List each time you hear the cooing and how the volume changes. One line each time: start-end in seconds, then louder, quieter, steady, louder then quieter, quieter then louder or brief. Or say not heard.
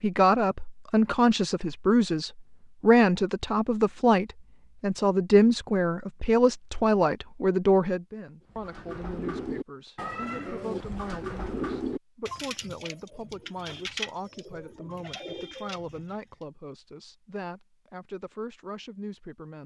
8.5-16.4 quieter.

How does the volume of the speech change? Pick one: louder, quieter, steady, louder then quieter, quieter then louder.
quieter.